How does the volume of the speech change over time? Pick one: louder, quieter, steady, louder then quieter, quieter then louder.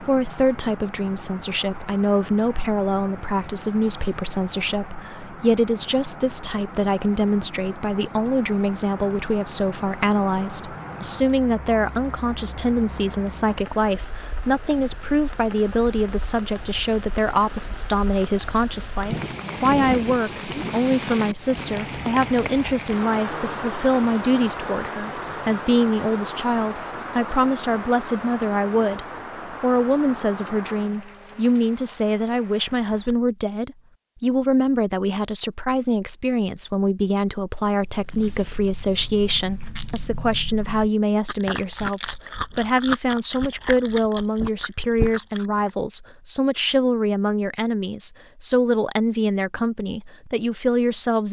steady.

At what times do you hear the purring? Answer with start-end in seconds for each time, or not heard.
not heard.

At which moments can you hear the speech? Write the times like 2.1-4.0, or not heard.
0.0-51.2.